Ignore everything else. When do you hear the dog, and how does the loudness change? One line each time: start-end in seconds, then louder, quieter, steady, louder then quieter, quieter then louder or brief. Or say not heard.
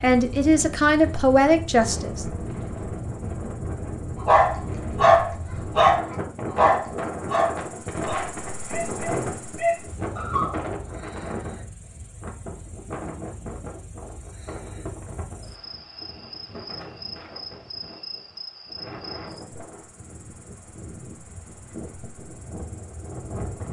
4.2-10.6 quieter then louder.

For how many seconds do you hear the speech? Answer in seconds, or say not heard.
2 s.